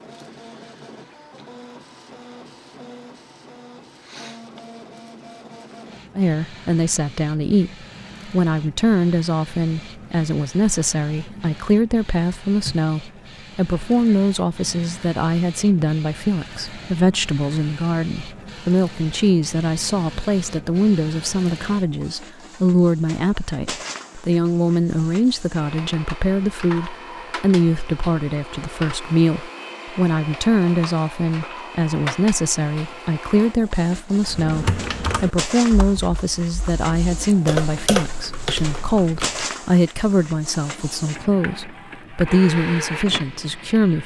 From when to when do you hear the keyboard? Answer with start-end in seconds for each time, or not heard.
34.2-39.5.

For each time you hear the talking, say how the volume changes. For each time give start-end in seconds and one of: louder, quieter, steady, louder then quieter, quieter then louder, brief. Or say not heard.
6.2-44.0 steady.